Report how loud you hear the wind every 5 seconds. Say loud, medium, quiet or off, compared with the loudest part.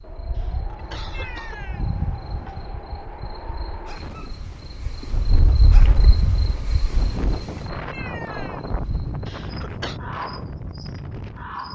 medium, loud, loud.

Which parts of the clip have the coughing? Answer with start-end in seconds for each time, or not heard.
0.3-1.6, 9.2-10.0.